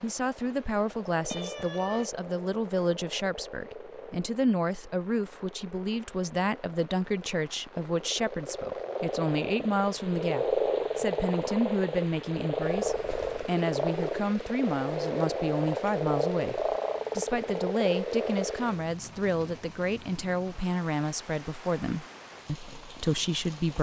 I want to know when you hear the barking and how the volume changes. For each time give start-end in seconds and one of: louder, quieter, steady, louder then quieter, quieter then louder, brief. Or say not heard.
not heard.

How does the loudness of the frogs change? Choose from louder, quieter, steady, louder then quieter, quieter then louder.
louder.